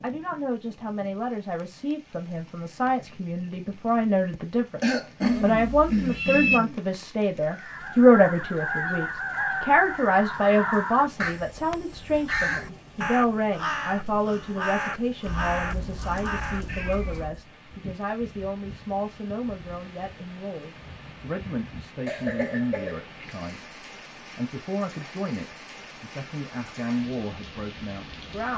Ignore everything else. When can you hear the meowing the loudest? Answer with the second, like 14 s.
6 s.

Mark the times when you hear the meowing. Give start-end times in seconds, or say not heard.
5.2-6.6, 15.2-17.4.